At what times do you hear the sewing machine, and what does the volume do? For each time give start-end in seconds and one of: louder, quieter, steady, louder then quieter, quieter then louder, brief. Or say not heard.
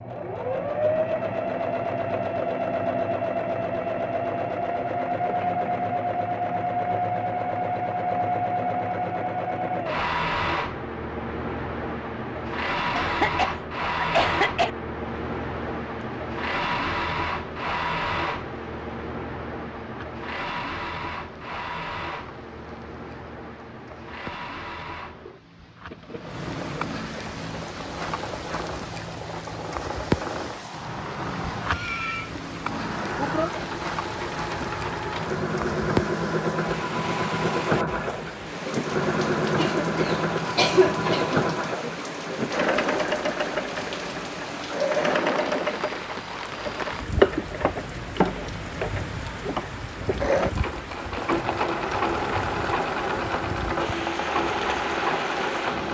0.0-55.9 quieter then louder.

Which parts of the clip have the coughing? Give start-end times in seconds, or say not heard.
12.9-14.7, 31.7-32.3, 39.5-41.5.